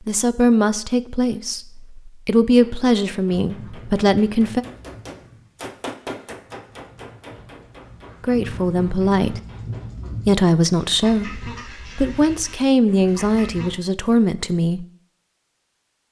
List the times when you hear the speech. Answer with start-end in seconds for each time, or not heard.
0.1-4.7, 8.2-9.4, 10.2-14.8.